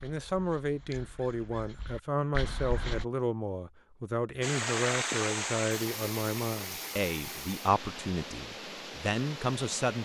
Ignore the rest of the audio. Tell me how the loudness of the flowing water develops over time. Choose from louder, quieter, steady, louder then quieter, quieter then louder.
quieter.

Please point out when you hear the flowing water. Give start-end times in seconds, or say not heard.
4.4-10.0.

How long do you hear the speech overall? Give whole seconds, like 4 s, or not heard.
10 s.